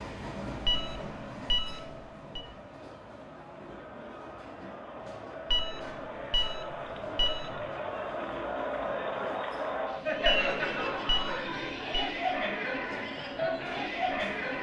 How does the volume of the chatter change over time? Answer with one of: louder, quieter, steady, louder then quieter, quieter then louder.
louder.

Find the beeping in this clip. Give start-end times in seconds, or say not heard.
0.7-2.5, 5.5-7.7, 10.2-12.1.